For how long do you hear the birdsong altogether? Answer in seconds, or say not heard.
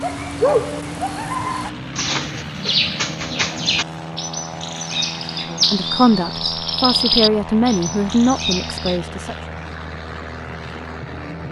9 s.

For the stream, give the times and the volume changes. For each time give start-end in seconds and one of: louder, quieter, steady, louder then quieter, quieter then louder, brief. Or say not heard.
not heard.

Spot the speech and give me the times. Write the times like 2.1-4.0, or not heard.
5.5-9.3.